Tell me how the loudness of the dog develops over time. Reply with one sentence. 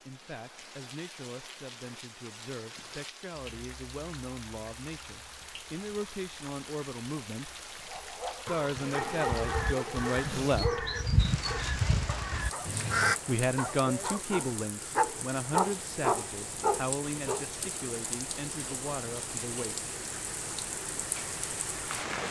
The volume of the dog goes down, then up.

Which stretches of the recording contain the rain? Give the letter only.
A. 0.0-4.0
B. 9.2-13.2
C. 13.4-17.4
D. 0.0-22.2
D.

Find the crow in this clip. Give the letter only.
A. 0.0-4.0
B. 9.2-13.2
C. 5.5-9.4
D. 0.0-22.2
B.